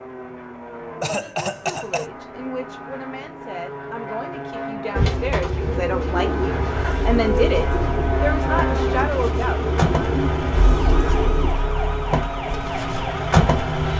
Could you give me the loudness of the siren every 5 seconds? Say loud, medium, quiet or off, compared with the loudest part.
off, medium, loud.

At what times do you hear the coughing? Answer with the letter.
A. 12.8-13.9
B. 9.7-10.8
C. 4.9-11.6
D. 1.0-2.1
D.